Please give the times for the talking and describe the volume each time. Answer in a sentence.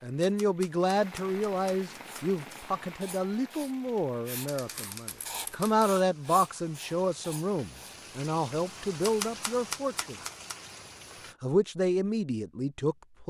The talking can be heard from 0.0 to 10.2 s, at a steady volume; and briefly from 11.4 to 13.2 s.